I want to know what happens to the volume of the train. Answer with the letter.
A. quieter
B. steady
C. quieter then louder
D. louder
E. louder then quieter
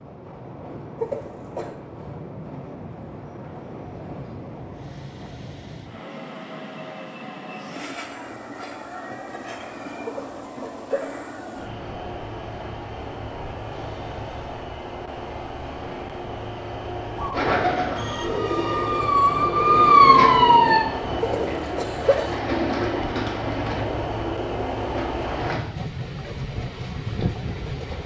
D.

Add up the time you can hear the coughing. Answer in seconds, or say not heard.
3 s.